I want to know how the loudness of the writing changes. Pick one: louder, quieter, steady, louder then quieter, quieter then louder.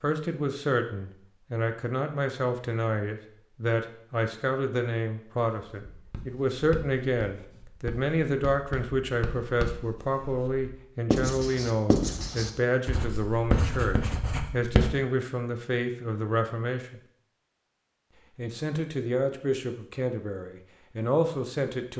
louder.